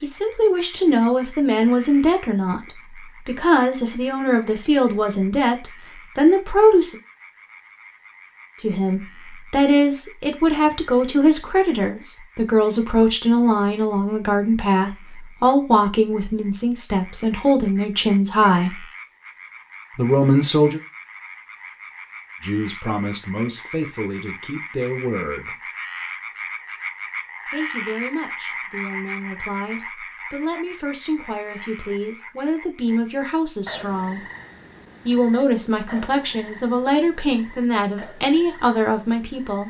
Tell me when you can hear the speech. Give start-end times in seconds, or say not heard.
0.0-7.0, 8.6-18.9, 19.9-20.8, 22.4-25.6, 27.5-34.2, 35.0-39.6.